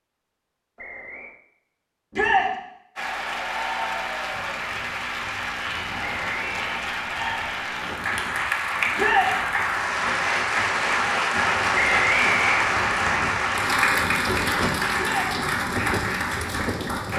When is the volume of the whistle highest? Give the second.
12 s.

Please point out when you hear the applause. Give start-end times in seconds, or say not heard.
3.0-17.1.